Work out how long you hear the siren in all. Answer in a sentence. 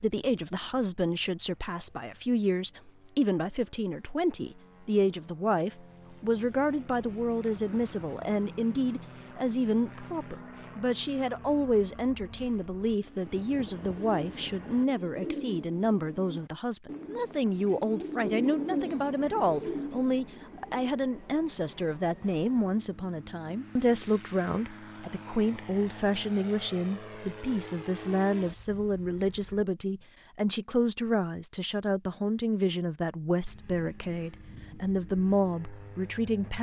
The siren can't be heard in this clip.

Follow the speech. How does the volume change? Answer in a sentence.
The loudness of the speech stays about the same.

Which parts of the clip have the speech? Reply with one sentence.
The speech can be heard from 0.0 to 36.5 s.